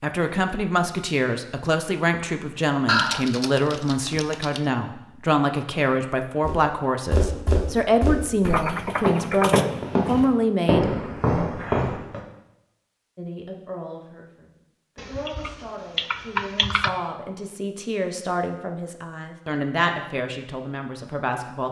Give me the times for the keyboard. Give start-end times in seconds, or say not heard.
2.9-4.6, 8.4-10.2, 14.9-16.9.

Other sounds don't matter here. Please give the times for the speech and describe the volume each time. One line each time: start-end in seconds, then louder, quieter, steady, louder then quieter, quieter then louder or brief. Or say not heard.
0.0-10.9 steady
13.2-21.6 louder.